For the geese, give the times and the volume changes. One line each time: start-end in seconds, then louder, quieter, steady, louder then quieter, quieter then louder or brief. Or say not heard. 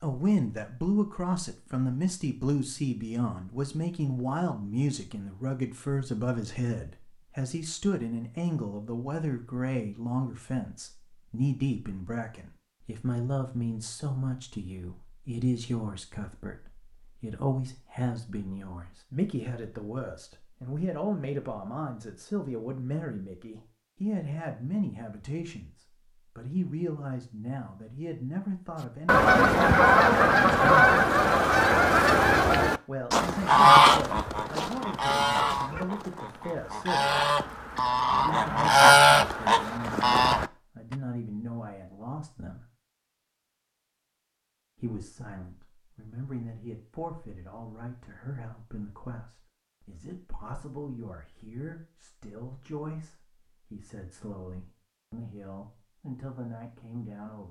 29.1-40.5 quieter then louder.